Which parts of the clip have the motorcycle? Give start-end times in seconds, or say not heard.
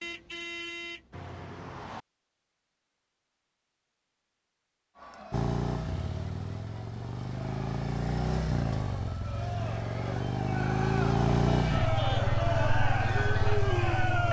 5.3-14.2.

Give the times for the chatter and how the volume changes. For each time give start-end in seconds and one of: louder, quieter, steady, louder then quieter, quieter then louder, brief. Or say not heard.
5.0-14.2 louder.